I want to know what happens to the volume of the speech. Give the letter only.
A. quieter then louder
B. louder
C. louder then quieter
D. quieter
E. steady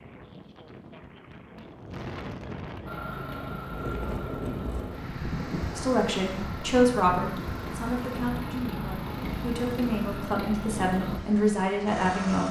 A.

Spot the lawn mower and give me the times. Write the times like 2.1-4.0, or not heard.
2.9-12.4.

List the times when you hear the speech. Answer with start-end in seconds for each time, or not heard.
5.8-12.4.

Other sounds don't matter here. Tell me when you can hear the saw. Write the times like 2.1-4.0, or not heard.
not heard.